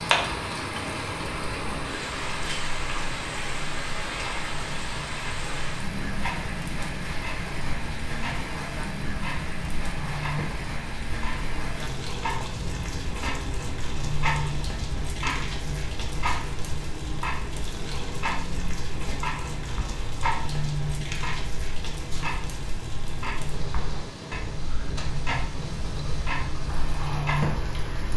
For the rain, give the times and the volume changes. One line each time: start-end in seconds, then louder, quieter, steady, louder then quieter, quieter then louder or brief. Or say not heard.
0.0-28.1 quieter.